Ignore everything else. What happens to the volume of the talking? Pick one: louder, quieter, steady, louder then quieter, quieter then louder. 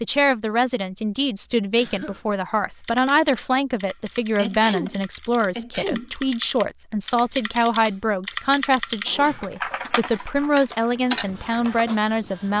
steady.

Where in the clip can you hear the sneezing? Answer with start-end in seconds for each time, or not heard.
1.8-2.2, 4.3-6.1, 9.1-10.2.